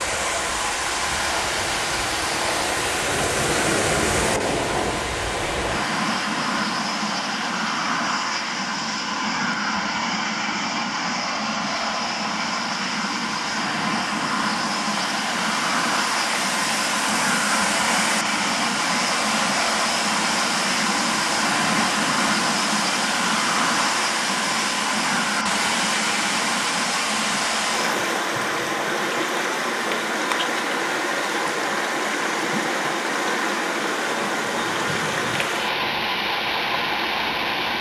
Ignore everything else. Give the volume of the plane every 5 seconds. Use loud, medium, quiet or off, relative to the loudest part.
loud, loud, loud, loud, loud, loud, off, off.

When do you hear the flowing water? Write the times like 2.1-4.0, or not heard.
0.0-37.7.